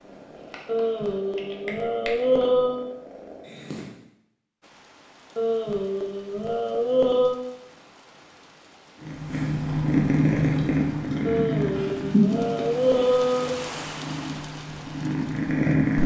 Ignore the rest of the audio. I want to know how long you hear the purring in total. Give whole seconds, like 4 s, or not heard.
11 s.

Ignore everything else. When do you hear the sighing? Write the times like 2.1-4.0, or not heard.
0.7-2.8, 5.3-7.3, 11.2-13.6.